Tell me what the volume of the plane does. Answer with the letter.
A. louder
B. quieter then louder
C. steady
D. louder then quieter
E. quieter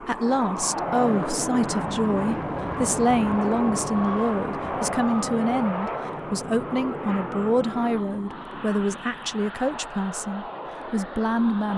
E.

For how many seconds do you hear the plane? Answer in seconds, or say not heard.
12 s.